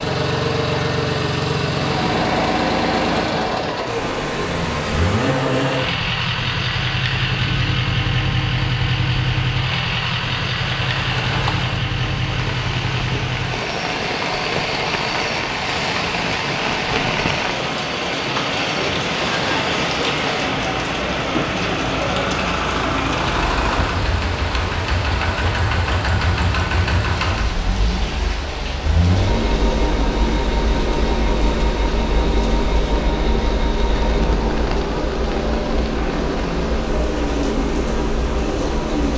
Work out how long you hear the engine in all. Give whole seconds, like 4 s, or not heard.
39 s.